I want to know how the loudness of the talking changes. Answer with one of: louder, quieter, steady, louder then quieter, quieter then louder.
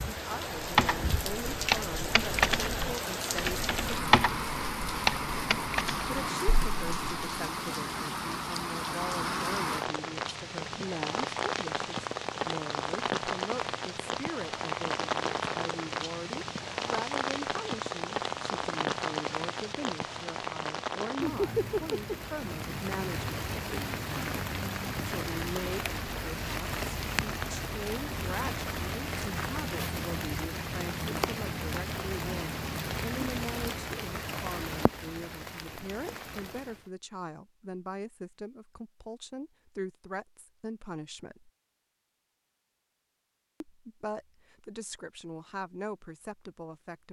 steady.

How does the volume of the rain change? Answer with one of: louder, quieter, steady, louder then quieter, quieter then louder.
steady.